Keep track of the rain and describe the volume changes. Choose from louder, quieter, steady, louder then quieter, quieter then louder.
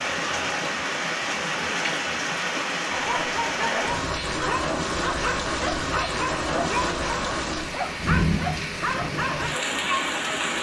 steady.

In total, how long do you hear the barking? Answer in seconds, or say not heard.
7 s.